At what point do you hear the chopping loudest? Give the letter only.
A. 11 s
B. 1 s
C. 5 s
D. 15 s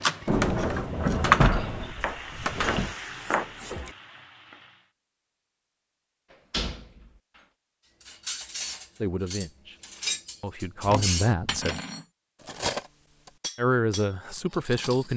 B.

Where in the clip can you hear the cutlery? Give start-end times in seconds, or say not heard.
8.0-15.1.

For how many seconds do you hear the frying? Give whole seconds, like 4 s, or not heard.
5 s.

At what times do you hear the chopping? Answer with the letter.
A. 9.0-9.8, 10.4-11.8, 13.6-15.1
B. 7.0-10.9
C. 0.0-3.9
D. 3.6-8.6
C.